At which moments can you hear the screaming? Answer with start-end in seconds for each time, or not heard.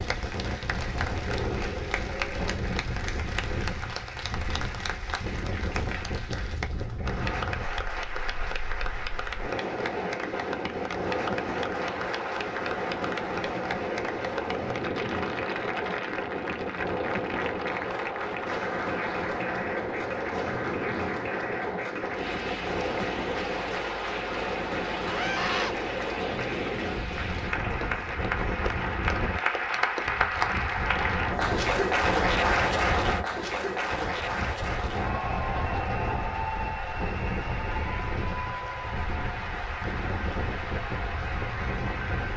1.2-2.6, 25.1-25.8.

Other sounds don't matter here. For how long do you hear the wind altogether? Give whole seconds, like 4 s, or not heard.
42 s.